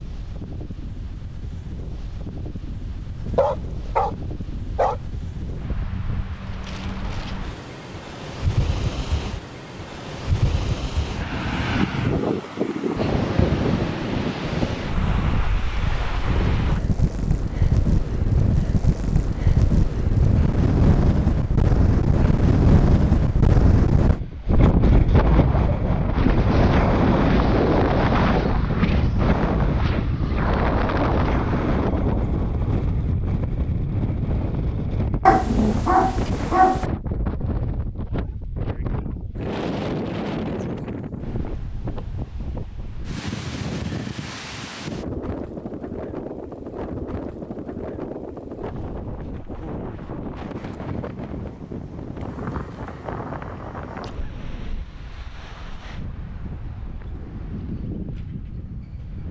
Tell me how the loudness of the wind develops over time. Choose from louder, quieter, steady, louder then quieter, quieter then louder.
louder then quieter.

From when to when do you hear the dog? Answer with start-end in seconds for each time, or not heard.
3.1-5.0, 35.2-36.9.